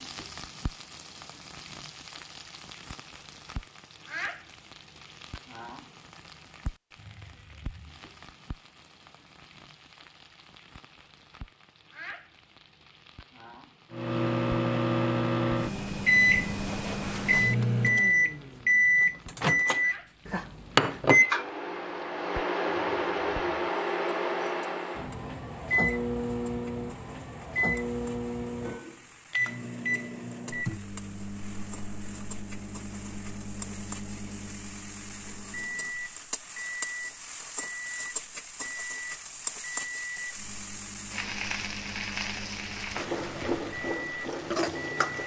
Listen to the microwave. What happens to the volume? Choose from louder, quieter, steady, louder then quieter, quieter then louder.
quieter.